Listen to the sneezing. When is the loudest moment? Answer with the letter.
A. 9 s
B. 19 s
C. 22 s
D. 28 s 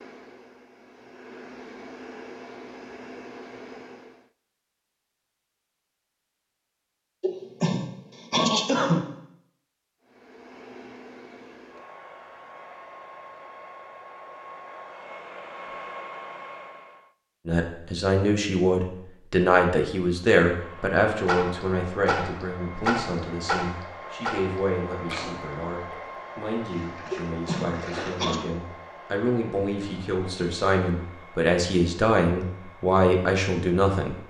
A.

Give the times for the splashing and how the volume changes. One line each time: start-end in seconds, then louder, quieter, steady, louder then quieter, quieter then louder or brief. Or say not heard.
21.2-28.4 quieter then louder.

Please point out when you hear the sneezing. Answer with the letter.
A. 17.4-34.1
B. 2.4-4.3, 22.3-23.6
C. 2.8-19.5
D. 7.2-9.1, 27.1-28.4
D.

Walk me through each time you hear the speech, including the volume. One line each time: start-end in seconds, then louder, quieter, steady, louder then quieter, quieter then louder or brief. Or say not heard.
17.4-34.1 quieter then louder.